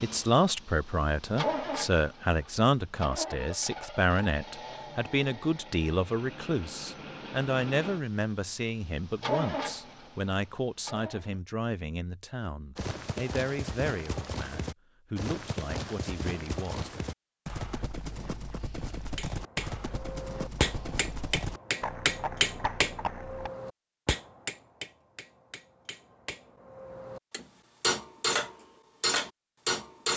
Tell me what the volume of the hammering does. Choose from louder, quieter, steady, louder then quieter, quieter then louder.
quieter then louder.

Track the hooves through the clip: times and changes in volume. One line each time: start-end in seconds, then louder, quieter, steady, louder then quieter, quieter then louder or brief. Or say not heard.
12.8-23.5 steady.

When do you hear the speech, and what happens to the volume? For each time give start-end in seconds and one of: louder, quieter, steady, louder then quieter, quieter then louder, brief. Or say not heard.
0.0-16.9 quieter.